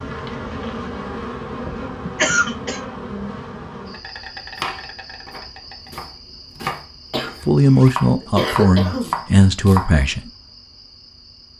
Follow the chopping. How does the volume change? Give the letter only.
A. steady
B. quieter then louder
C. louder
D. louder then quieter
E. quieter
B.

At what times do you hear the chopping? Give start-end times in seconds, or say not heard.
4.2-9.9.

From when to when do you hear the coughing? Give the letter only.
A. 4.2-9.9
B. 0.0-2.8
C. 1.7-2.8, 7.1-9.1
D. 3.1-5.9
C.